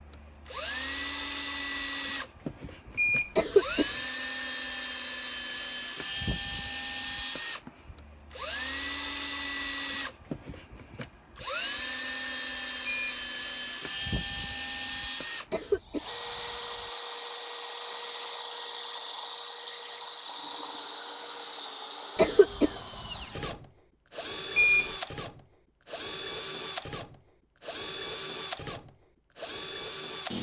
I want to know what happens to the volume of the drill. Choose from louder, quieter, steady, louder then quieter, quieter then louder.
steady.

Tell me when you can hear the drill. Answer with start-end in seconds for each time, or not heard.
0.0-30.3.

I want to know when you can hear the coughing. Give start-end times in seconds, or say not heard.
3.4-3.9, 15.5-16.1, 22.1-22.7.